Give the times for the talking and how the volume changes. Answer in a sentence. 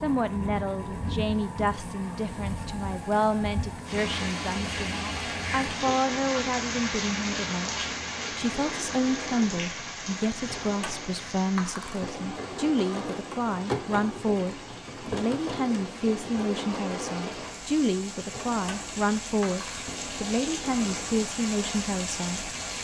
The talking can be heard from 0.0 to 22.8 s, at a steady volume.